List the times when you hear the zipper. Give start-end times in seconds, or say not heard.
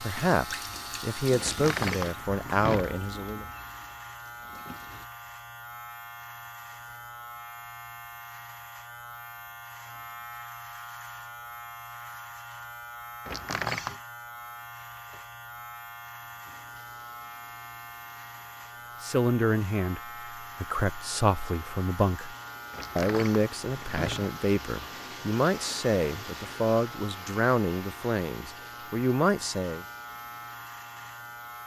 not heard.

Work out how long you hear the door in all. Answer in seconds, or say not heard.
4 s.